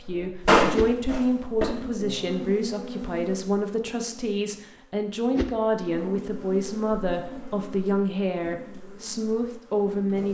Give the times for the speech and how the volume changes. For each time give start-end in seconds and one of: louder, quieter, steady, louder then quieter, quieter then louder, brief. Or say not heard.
0.1-10.2 steady.